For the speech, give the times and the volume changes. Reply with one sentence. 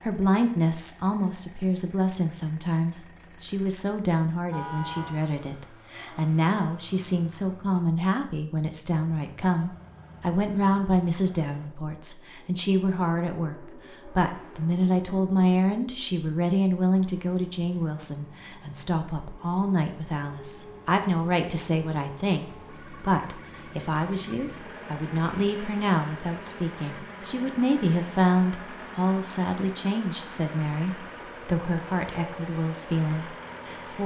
The speech can be heard from 0.0 to 34.0 s, at a steady volume.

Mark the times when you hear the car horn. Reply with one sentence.
The car horn can be heard from 4.5 to 5.2 s.